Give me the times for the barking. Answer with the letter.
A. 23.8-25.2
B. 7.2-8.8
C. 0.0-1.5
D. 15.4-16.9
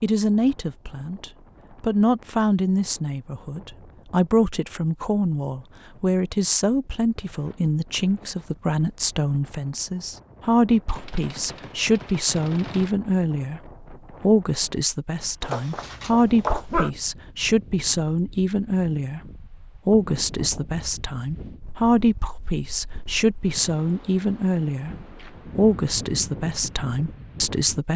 D.